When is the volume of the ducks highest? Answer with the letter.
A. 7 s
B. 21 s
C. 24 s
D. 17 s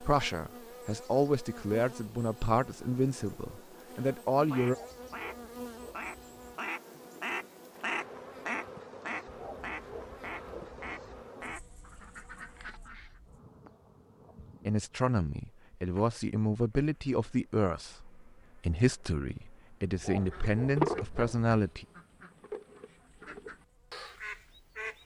B.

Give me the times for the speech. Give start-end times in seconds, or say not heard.
0.0-4.8, 14.7-21.9.